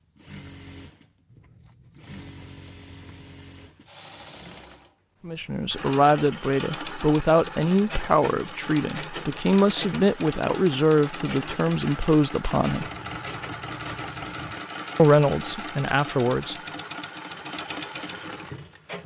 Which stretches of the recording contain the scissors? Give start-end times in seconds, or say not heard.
1.2-3.1, 12.8-14.6.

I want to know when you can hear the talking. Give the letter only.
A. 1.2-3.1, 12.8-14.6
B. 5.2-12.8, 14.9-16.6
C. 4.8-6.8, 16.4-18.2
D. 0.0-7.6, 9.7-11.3
B.